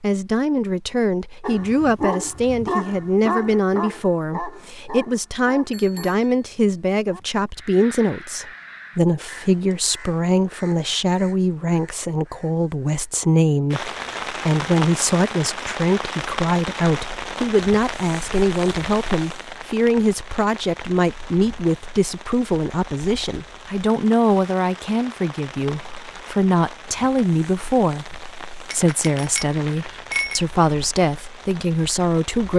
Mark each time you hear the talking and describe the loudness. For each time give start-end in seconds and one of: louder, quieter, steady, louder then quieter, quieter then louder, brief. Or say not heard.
0.0-32.5 steady.